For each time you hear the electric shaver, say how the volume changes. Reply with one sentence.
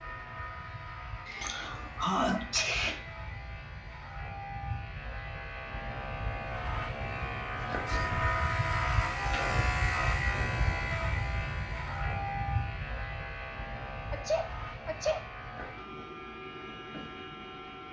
The electric shaver can be heard from 0.0 to 17.8 s, getting louder then quieter.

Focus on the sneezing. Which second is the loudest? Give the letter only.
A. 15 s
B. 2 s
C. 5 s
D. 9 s
B.